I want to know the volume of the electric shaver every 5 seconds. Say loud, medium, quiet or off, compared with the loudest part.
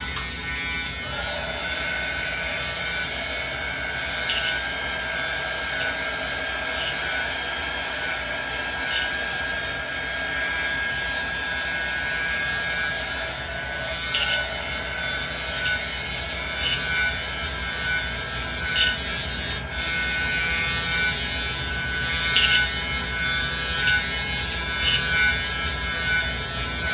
medium, medium, medium, loud, loud, loud.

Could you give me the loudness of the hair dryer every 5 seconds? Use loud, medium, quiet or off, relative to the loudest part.
loud, loud, loud, medium, medium, medium.